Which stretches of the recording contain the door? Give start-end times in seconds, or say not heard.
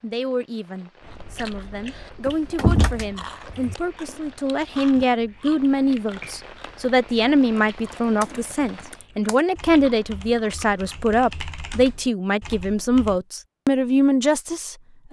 2.2-3.8.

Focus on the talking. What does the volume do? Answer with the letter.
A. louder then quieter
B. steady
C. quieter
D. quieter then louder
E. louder
E.